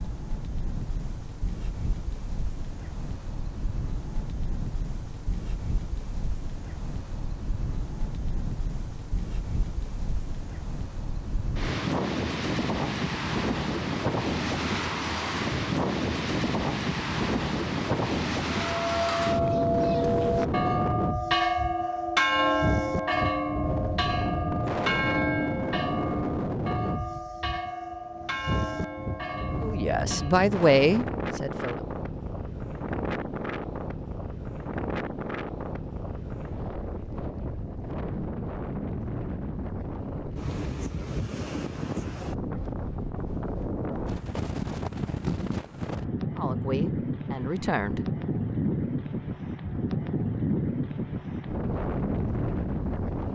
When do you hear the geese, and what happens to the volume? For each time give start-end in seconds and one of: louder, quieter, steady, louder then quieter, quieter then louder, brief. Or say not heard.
not heard.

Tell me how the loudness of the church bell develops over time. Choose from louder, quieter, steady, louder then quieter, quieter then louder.
quieter.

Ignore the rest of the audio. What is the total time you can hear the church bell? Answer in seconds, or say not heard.
12 s.